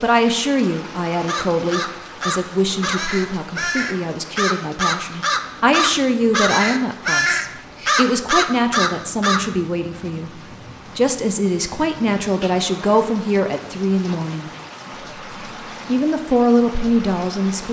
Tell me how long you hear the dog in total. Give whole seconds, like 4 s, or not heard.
not heard.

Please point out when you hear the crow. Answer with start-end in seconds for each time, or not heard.
1.1-9.6.